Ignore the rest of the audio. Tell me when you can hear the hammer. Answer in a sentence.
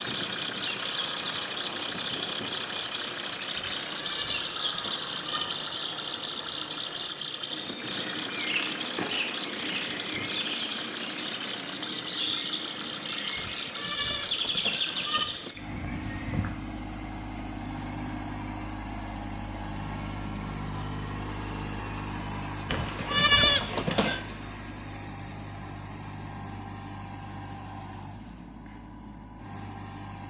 You can't hear the hammer here.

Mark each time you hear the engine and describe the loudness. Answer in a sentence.
You can hear the engine from 0.0 to 30.2 s, getting quieter.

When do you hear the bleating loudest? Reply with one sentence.
The loudest moment of the bleating is at 23 seconds.